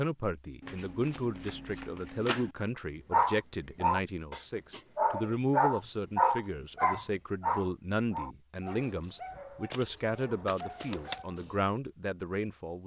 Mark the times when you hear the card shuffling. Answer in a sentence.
You can hear the card shuffling from 0.6 to 2.5 s and from 9.7 to 11.2 s.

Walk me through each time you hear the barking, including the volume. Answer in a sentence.
The barking can be heard from 3.1 to 11.7 s, getting quieter.